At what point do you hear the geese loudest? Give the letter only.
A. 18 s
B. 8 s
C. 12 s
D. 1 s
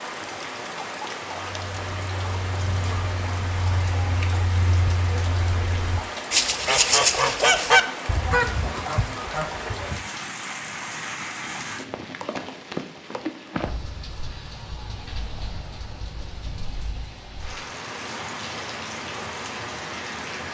B.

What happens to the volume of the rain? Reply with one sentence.
The volume of the rain stays about the same.